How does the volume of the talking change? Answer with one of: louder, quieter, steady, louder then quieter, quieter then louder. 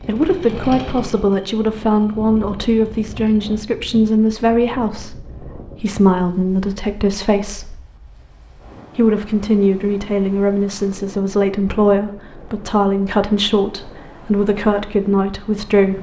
steady.